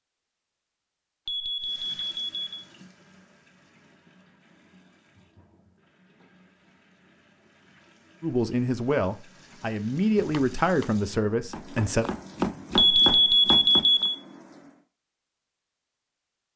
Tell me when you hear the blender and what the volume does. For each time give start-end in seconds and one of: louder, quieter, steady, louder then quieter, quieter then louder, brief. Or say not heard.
not heard.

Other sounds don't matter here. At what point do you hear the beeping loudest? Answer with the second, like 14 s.
13 s.